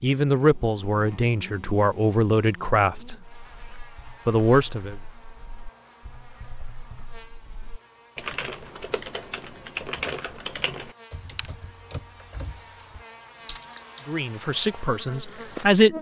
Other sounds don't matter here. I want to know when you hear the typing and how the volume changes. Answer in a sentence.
The typing can be heard from 3.0 to 14.1 s, getting louder then quieter.